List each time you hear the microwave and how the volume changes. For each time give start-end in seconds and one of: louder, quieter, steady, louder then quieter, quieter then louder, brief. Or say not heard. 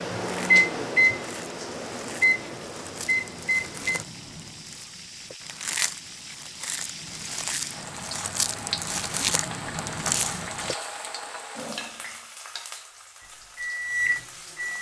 0.0-4.0 quieter then louder
13.6-14.7 brief.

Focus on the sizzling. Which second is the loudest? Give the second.
9 s.